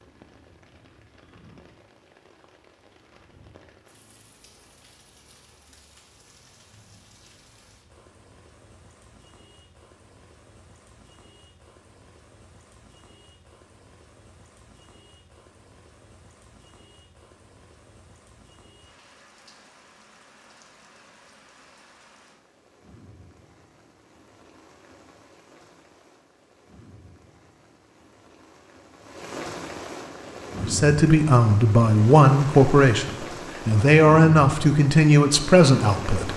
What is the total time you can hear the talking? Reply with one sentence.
You can hear the talking for 6 seconds altogether.